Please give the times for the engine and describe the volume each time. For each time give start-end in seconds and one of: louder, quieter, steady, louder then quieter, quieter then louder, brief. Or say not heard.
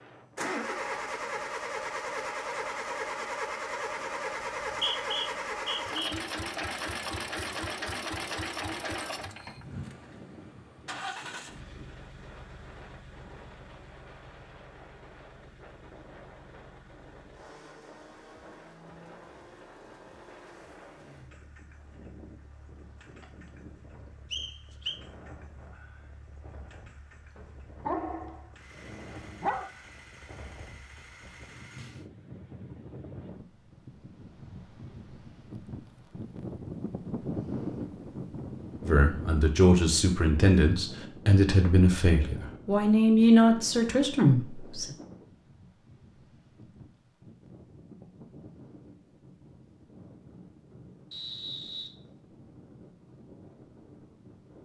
0.0-32.1 quieter.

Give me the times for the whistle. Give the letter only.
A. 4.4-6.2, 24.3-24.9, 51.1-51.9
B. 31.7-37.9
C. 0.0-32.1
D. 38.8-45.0
A.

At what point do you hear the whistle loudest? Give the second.
5 s.